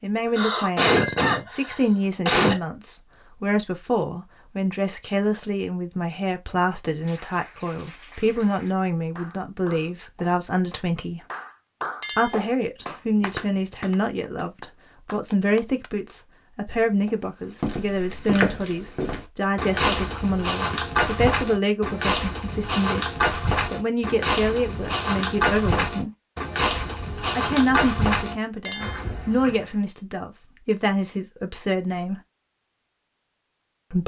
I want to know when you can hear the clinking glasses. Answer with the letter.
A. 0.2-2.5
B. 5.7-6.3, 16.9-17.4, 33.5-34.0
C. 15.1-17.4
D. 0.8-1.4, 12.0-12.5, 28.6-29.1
D.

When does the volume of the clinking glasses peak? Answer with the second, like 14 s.
1 s.